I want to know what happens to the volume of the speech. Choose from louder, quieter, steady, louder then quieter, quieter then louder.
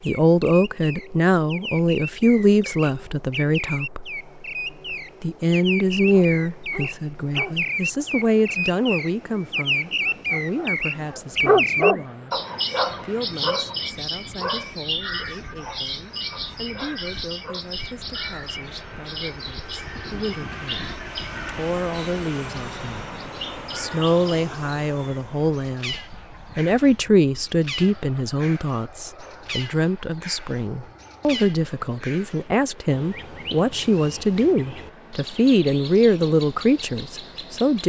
quieter then louder.